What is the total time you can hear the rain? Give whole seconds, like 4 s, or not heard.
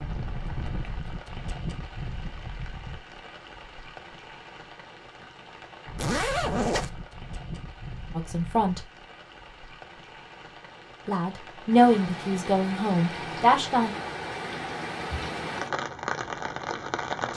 17 s.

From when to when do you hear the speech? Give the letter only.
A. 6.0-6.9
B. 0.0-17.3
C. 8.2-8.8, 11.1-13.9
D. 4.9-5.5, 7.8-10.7
C.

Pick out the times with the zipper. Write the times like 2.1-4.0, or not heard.
6.0-6.9.